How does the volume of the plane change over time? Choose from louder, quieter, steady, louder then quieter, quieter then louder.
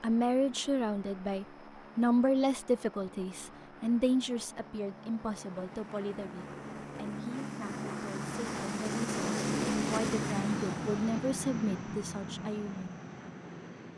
louder then quieter.